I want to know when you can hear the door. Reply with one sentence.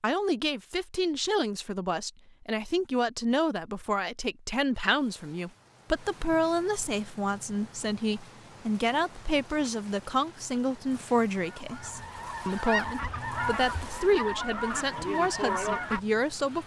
The door can't be heard in this clip.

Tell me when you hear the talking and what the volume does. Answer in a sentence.
You can hear the talking from 0.0 to 16.6 s, at a steady volume.